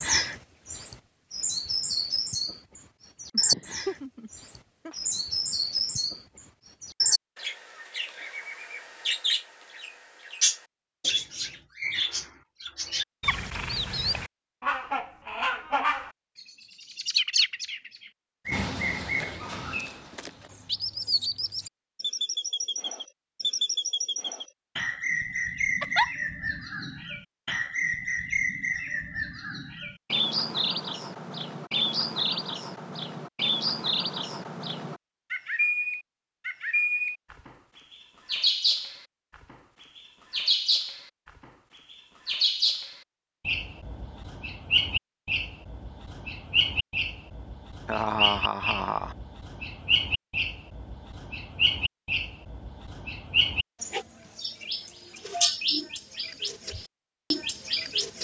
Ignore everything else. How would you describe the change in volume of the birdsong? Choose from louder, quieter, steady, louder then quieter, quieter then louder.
steady.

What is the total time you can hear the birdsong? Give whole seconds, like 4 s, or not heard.
57 s.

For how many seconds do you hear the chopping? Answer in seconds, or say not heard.
not heard.